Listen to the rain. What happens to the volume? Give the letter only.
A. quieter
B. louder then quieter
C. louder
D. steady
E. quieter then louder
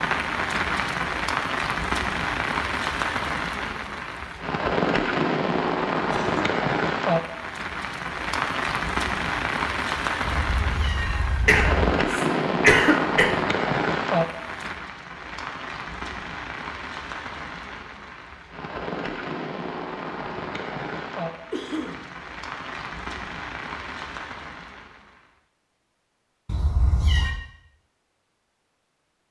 A.